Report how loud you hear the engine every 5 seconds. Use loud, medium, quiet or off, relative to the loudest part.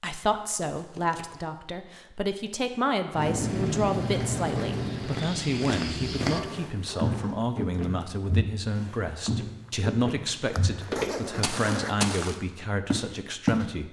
loud, medium, off.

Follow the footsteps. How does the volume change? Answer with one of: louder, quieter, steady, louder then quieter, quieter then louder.
louder.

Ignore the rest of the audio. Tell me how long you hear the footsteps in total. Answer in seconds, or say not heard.
10 s.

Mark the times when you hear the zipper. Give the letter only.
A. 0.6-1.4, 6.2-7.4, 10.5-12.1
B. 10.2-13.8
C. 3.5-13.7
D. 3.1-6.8
A.